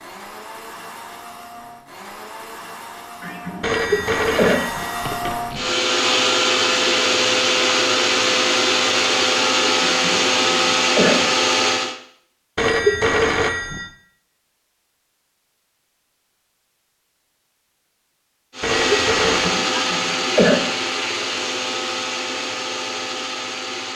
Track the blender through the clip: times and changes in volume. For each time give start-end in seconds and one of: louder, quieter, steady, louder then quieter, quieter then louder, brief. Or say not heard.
0.0-11.9 louder
18.6-23.9 quieter.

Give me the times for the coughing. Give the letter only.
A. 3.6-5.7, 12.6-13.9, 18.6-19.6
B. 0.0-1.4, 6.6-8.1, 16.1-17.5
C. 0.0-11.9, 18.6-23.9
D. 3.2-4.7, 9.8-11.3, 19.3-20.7
D.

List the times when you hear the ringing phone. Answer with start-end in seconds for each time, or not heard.
3.6-5.7, 12.6-13.9, 18.6-19.6.